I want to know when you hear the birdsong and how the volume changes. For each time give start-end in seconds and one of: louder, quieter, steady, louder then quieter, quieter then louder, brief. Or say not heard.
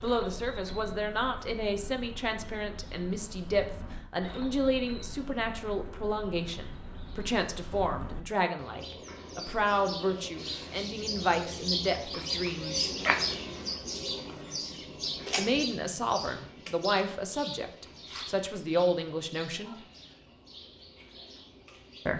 0.0-22.1 louder then quieter.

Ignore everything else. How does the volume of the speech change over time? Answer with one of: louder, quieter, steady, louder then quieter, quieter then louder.
steady.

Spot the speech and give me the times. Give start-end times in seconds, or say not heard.
0.0-12.9, 15.3-19.8.